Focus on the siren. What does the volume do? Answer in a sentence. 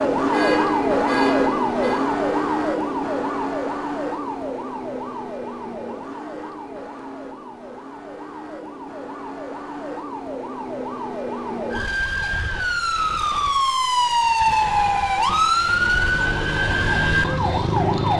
The loudness of the siren goes down, then up.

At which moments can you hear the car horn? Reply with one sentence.
The car horn can be heard from 0.3 to 2.0 s and from 14.4 to 15.5 s.